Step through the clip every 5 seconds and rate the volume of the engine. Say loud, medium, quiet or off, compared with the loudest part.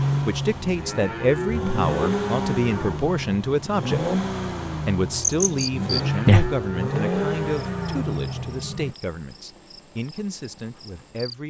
loud, loud, off.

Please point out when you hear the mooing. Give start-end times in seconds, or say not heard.
0.7-3.1, 5.8-8.1.